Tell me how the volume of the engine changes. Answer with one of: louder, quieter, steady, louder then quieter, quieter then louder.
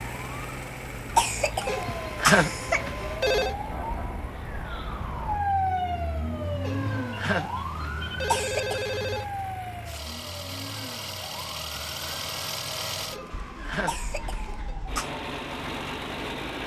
quieter then louder.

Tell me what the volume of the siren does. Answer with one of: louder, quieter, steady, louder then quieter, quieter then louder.
louder then quieter.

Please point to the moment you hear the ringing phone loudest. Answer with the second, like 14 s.
2 s.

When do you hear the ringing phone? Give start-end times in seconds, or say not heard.
1.6-3.5, 6.6-9.2, 13.1-14.8.